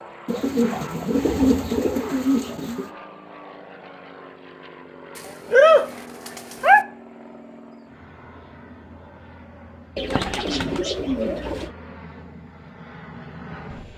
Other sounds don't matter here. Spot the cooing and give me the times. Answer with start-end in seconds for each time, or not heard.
0.2-2.9, 5.2-6.8, 9.9-11.7.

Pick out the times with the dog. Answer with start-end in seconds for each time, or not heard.
not heard.